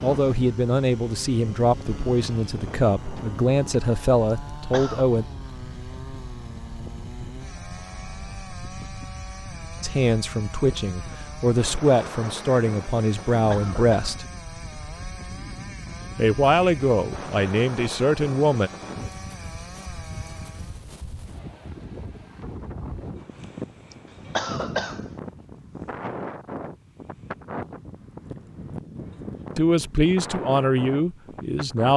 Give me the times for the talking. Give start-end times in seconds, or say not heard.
0.0-5.2, 9.8-14.2, 16.1-18.7, 29.6-31.9.